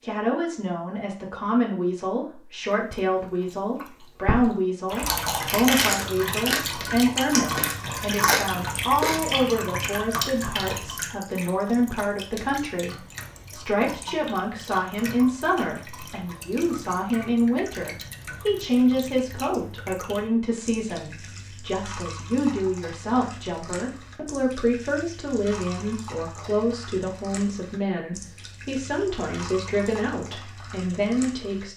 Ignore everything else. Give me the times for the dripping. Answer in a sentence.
The dripping can be heard from 4.8 to 31.6 s.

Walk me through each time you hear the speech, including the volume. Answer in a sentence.
You can hear the speech from 0.0 to 31.7 s, at a steady volume.